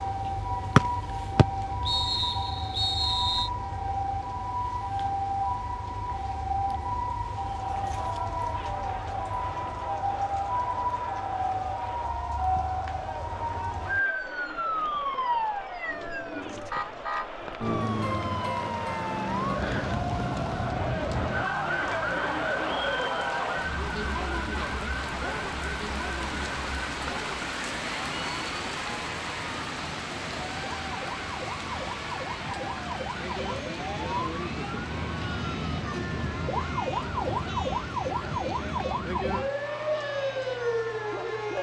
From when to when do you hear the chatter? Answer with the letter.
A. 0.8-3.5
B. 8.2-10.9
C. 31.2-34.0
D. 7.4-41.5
D.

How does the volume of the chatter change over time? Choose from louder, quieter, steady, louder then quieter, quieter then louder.
louder then quieter.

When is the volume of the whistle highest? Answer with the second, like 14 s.
1 s.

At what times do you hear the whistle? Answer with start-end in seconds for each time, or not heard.
0.8-3.5.